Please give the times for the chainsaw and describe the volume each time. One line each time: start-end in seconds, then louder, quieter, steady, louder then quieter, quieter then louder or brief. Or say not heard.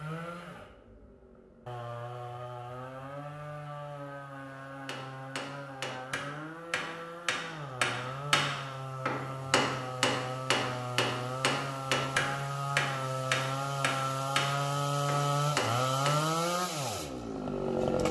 0.0-18.0 louder.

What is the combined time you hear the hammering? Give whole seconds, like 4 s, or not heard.
12 s.